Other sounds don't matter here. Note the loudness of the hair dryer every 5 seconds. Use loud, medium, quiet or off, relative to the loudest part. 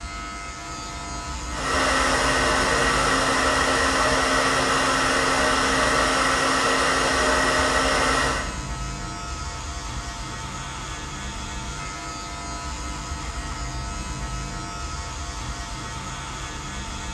loud, loud, off, off.